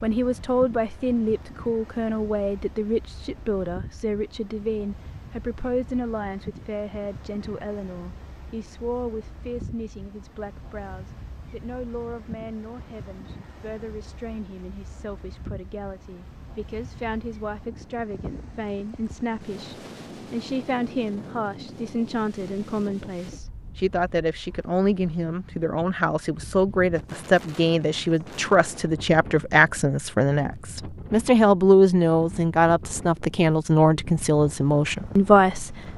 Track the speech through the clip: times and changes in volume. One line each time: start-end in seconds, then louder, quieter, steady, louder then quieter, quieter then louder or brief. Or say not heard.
0.0-35.9 quieter then louder.